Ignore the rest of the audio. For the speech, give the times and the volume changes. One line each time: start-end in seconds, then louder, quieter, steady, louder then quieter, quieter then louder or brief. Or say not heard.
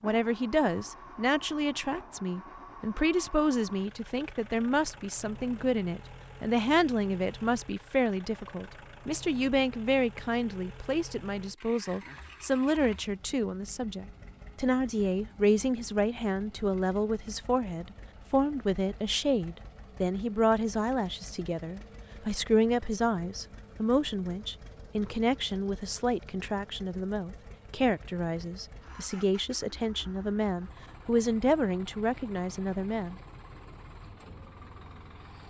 0.0-33.1 steady.